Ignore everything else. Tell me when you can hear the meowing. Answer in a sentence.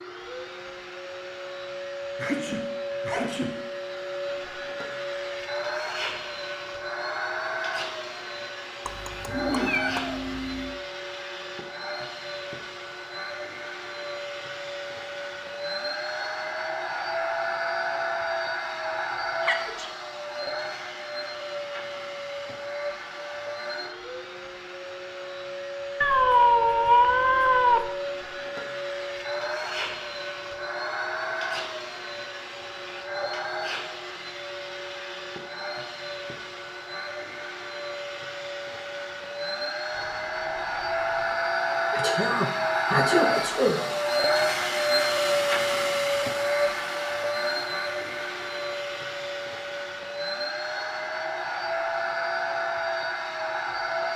The meowing can be heard from 8.8 to 10.8 s, from 26.0 to 27.9 s and from 39.9 to 41.5 s.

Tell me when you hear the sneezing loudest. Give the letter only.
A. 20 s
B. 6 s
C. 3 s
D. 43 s
D.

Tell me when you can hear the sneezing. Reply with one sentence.
The sneezing can be heard from 2.1 to 3.5 s, from 19.4 to 19.9 s and from 41.9 to 43.9 s.